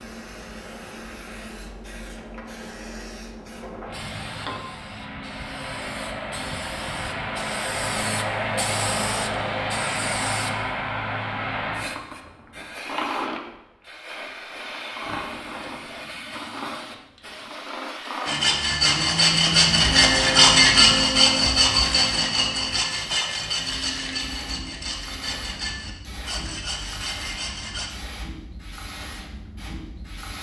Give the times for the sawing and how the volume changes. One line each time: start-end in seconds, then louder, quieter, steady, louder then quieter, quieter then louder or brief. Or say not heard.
18.2-27.9 quieter.